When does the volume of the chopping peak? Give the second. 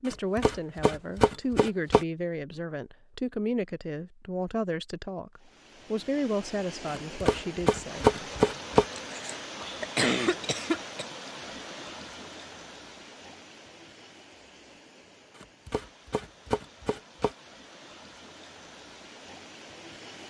8 s.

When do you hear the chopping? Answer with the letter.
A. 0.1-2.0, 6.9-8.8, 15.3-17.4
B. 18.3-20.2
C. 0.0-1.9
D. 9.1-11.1
A.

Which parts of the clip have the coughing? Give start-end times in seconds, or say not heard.
9.1-11.1.